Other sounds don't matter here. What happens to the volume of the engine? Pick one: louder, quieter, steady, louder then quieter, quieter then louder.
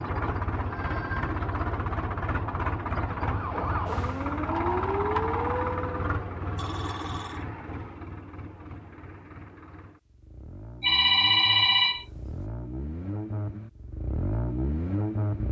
quieter then louder.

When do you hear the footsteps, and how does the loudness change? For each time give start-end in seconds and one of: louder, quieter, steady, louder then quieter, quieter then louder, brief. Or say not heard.
not heard.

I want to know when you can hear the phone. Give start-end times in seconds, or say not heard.
0.7-1.4, 6.5-7.5, 10.8-12.4.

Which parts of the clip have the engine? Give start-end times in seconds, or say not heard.
0.0-15.4.